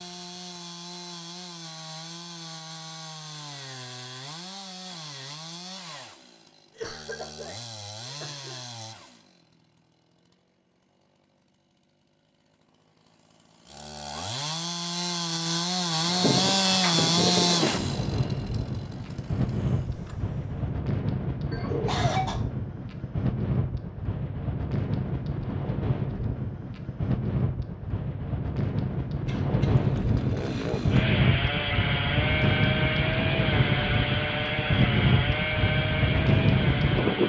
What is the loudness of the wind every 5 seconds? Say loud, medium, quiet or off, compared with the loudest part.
off, off, off, medium, medium, medium, loud, loud.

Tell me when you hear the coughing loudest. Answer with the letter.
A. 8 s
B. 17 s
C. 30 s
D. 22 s
D.